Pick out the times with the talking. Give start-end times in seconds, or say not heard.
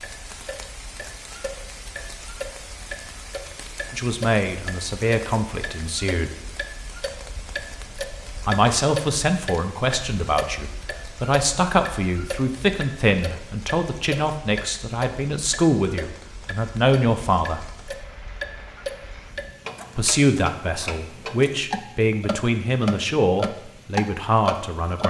3.9-6.3, 8.4-17.7, 19.9-25.0.